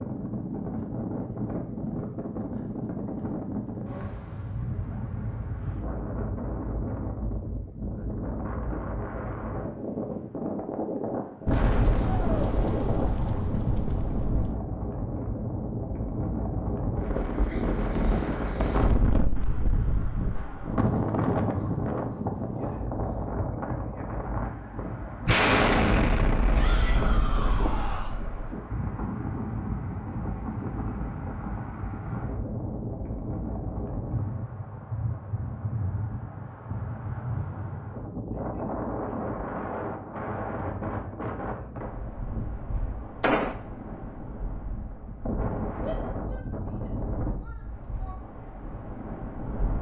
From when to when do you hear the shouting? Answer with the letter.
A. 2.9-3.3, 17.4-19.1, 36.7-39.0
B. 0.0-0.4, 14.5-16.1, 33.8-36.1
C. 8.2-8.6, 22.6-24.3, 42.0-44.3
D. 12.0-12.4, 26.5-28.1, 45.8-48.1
D.